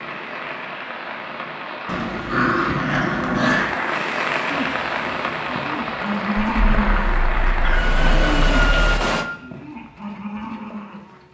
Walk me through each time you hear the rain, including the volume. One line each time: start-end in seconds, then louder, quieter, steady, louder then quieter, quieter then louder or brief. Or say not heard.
0.0-9.2 louder.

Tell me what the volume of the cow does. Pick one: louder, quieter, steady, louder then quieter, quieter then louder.
louder then quieter.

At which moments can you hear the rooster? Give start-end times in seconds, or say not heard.
7.6-9.1.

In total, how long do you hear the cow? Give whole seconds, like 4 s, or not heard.
7 s.